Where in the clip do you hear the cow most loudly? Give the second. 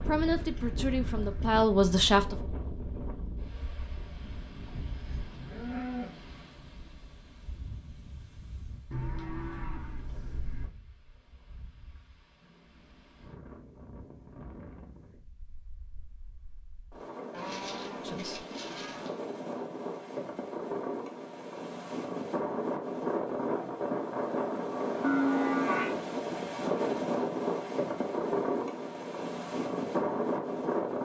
25 s.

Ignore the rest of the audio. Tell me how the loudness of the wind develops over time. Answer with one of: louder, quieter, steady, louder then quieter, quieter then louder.
quieter then louder.